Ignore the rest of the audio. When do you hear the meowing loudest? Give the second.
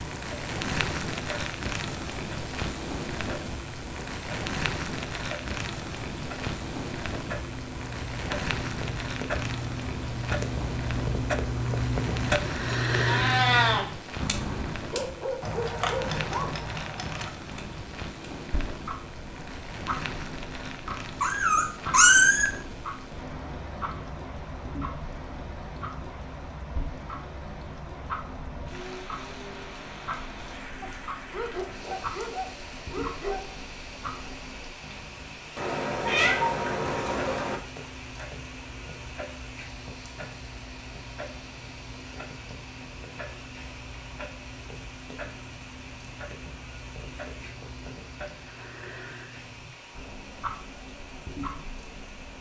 22 s.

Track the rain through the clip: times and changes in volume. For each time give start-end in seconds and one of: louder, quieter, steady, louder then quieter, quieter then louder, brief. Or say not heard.
0.0-52.3 quieter.